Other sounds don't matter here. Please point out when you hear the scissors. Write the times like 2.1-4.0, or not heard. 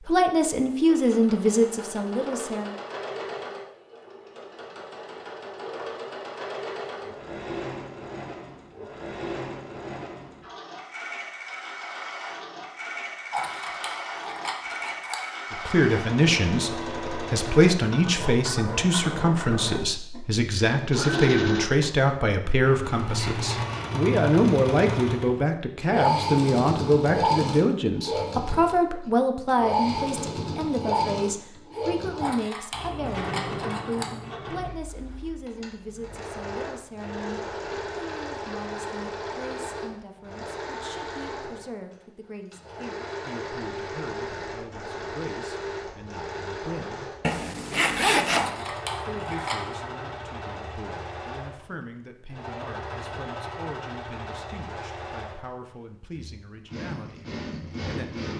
13.3-15.2, 32.2-34.0, 48.4-49.8.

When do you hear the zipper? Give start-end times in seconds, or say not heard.
22.6-23.9, 47.2-48.5.